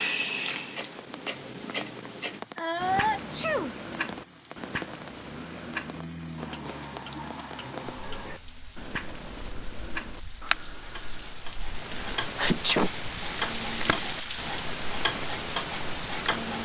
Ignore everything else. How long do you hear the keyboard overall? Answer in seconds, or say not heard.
not heard.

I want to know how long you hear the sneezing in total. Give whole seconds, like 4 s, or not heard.
2 s.